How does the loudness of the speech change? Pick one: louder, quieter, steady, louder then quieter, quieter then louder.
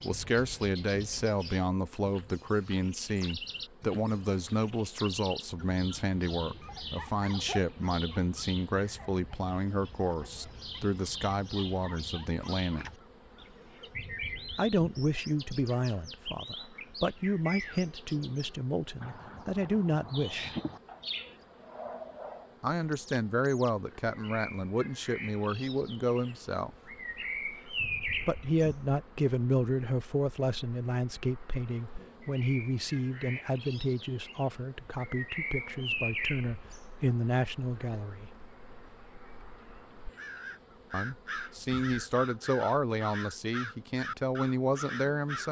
steady.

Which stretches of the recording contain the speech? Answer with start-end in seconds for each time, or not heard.
0.0-12.8, 14.6-20.6, 22.6-26.7, 28.2-38.4, 40.9-45.4.